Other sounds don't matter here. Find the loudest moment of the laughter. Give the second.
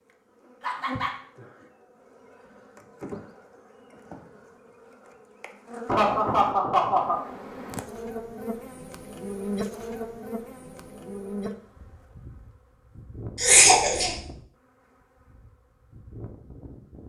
14 s.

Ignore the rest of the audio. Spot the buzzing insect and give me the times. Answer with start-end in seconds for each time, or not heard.
0.0-17.0.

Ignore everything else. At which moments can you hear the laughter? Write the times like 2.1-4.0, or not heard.
0.6-1.1, 5.8-7.2, 13.4-14.1.